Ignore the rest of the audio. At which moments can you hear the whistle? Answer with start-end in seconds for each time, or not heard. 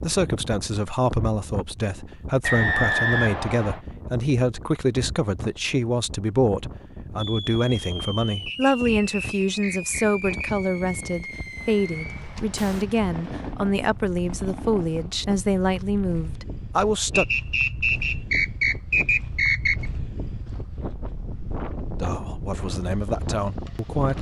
2.4-3.8, 8.4-10.5, 17.1-19.9.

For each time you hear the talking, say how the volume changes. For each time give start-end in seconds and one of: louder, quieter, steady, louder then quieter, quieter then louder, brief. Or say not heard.
0.0-17.2 steady
22.0-24.1 brief.